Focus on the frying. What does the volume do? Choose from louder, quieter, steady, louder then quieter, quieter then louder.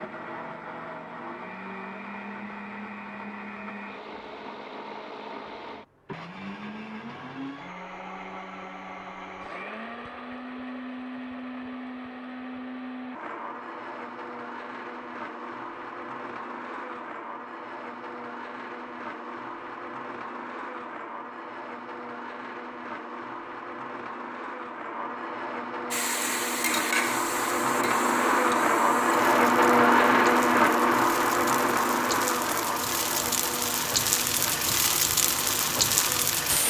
quieter then louder.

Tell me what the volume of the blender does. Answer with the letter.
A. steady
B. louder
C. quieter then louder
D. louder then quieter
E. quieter
B.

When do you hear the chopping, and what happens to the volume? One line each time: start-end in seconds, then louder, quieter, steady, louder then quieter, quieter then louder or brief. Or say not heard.
not heard.